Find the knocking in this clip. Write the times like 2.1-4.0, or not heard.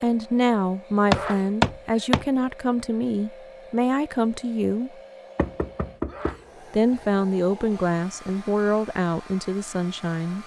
1.1-2.2, 5.3-7.0.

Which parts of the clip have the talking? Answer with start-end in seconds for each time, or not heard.
0.0-4.9, 6.7-10.4.